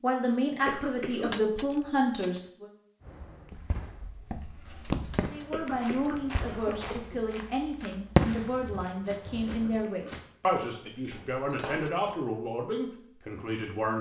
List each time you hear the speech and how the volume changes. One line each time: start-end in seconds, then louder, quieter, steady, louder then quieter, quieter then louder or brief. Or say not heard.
0.0-2.7 brief
5.3-13.9 steady.